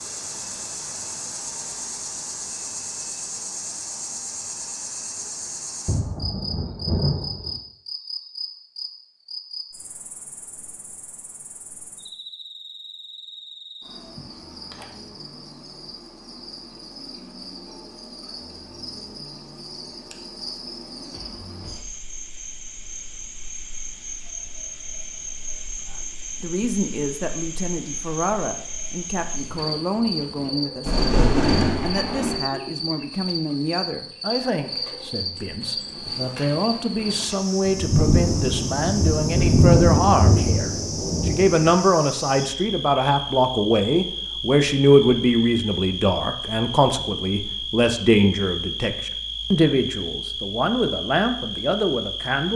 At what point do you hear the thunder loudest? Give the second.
40 s.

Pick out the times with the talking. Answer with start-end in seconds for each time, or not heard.
25.9-52.5.